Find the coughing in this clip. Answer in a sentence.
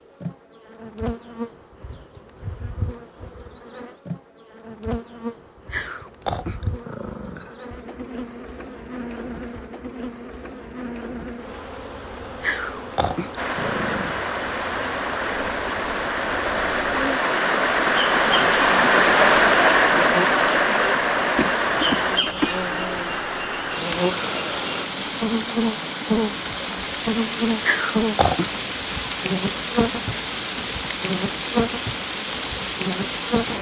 The coughing can be heard from 21.4 to 22.6 s.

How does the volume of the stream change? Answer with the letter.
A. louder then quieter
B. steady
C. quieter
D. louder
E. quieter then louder
A.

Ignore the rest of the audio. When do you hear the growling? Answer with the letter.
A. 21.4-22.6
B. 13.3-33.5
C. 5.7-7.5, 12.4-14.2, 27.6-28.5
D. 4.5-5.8
C.